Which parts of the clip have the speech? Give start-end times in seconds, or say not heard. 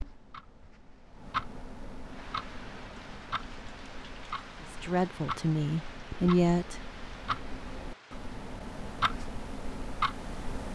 4.7-6.8.